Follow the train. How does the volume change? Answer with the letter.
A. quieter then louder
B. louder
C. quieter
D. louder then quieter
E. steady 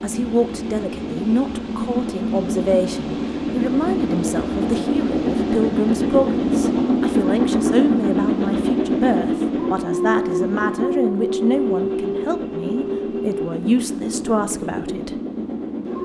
D.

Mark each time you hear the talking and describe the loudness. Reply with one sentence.
The talking can be heard from 0.0 to 15.1 s, at a steady volume.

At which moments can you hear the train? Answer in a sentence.
You can hear the train from 0.0 to 16.0 s.